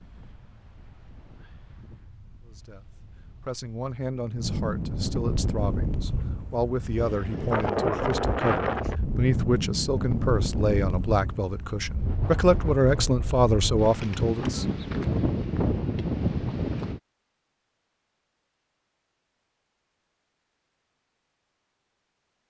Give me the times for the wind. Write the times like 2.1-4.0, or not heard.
0.0-17.0.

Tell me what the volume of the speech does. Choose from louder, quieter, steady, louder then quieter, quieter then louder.
louder.